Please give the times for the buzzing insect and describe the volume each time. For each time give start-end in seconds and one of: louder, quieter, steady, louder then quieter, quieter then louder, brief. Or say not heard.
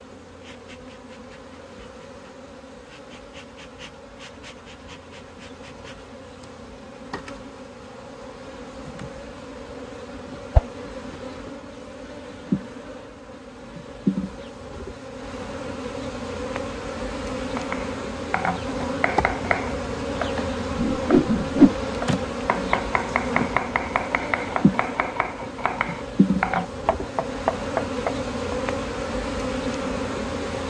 0.0-30.6 louder.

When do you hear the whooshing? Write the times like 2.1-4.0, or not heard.
20.8-21.8.